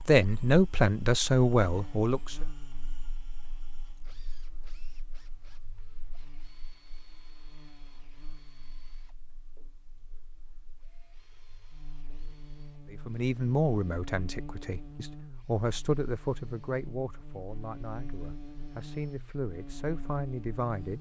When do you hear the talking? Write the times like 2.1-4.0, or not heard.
0.0-2.4, 12.9-20.9.